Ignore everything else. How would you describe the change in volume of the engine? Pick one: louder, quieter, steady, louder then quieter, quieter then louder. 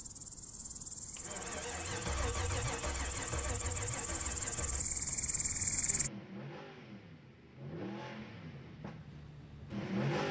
quieter.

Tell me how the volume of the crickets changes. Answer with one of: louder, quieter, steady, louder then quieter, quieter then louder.
louder.